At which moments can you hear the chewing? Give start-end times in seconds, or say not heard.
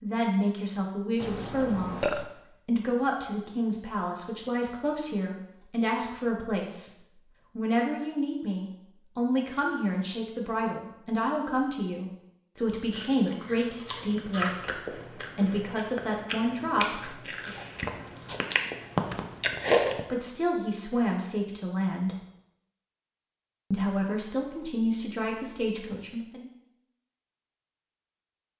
12.9-20.1.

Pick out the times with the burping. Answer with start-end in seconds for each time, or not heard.
1.2-2.2.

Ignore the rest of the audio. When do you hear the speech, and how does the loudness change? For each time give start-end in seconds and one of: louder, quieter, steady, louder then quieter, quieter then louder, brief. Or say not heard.
0.0-17.5 steady
20.1-22.1 brief
23.7-26.5 brief.